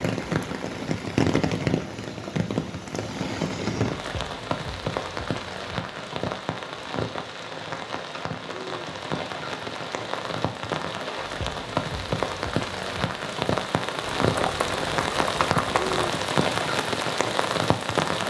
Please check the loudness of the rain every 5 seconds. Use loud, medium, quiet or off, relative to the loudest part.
loud, medium, loud, loud.